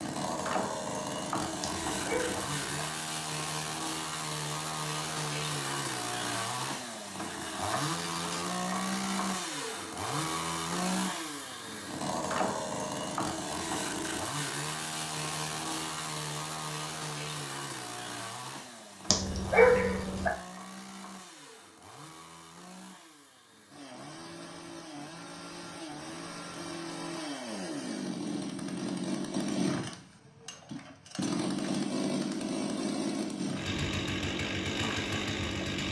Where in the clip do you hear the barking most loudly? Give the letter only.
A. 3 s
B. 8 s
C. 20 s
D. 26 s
C.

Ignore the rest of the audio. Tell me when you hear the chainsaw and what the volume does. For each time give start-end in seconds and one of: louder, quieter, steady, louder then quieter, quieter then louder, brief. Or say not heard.
0.0-35.8 quieter then louder.